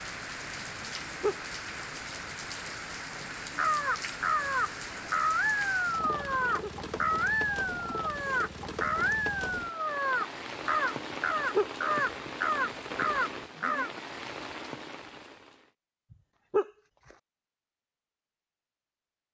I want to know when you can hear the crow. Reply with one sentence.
You can hear the crow from 3.5 to 13.9 s.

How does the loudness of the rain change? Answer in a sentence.
The loudness of the rain stays about the same.